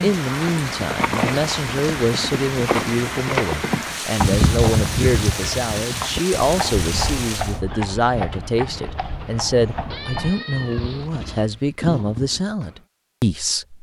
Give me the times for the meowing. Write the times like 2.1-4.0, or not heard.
9.9-11.1.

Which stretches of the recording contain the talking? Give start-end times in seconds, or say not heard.
0.0-13.7.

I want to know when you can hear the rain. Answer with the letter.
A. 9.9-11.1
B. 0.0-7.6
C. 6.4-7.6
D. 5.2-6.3
B.